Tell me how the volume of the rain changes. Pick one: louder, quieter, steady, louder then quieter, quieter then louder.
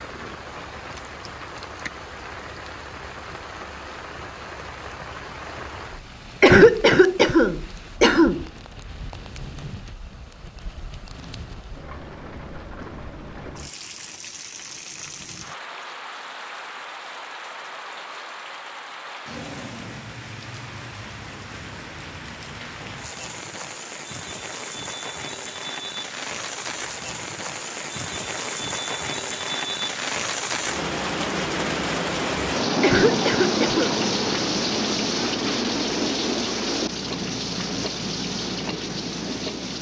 louder.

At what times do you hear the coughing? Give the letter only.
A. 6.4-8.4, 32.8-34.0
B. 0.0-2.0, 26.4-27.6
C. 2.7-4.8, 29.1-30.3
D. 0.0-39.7
A.